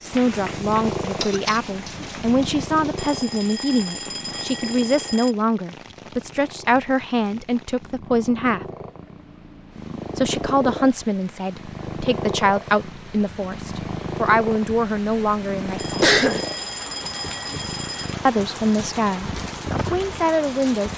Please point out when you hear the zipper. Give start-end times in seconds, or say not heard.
not heard.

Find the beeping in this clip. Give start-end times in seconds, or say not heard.
3.0-5.3, 15.8-18.1.